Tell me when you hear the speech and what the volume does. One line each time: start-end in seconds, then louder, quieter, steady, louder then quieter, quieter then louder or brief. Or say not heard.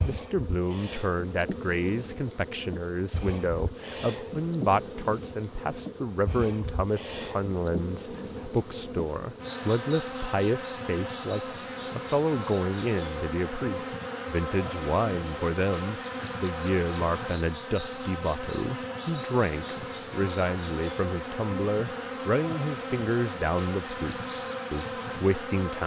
0.0-25.8 steady.